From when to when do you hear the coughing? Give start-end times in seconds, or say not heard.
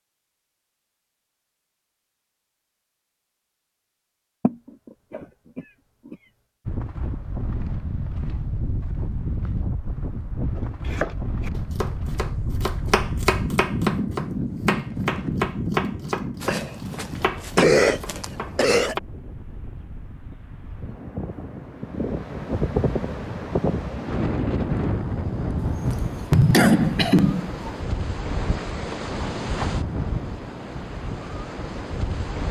4.4-6.2, 16.4-18.9, 25.6-27.7.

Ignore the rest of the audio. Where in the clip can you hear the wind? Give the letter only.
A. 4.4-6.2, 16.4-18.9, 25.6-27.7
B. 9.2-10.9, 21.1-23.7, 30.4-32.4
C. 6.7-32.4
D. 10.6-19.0
C.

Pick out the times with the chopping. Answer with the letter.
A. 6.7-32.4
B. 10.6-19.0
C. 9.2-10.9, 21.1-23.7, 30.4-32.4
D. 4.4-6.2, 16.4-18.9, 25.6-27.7
B.